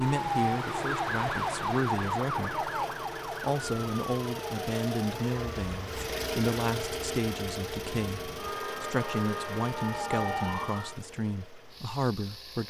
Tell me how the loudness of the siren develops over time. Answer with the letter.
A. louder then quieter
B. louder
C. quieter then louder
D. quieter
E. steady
C.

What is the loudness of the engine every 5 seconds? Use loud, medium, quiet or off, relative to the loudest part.
loud, loud, medium.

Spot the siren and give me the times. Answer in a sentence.
You can hear the siren from 0.0 to 11.0 s.